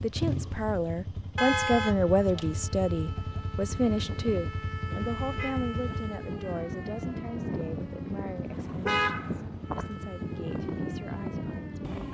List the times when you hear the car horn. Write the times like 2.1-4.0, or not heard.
1.4-2.4, 5.2-5.7, 8.5-9.8.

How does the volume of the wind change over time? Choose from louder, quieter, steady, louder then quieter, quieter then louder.
louder.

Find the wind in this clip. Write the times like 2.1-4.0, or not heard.
3.6-12.0.